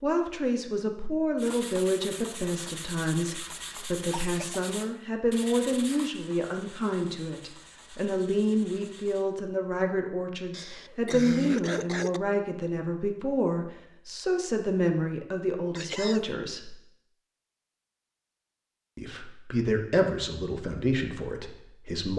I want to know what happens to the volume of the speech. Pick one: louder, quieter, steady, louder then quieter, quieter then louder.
steady.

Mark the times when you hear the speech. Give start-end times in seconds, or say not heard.
0.0-16.8, 18.9-22.1.